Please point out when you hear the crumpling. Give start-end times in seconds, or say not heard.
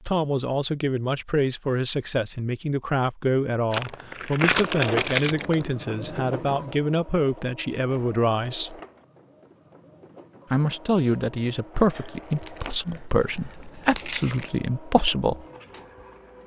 3.7-5.7, 11.9-14.5.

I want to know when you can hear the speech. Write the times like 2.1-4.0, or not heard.
0.1-8.8, 10.5-15.4.